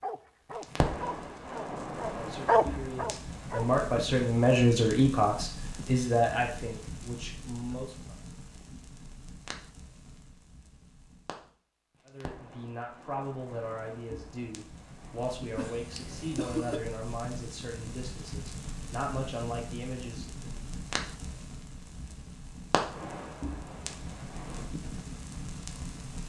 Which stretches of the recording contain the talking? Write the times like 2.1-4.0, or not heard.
2.1-8.2, 12.1-20.6.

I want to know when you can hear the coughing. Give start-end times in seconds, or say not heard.
15.6-16.8.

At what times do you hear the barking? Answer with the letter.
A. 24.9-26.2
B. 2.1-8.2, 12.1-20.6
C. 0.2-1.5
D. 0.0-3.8
D.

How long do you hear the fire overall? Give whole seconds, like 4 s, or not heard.
26 s.